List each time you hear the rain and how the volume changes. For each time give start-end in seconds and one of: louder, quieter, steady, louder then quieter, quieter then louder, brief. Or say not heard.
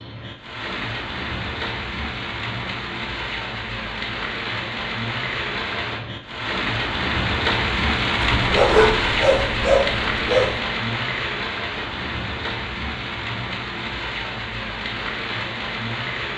0.0-16.3 louder then quieter.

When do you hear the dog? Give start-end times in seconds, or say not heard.
8.2-10.6.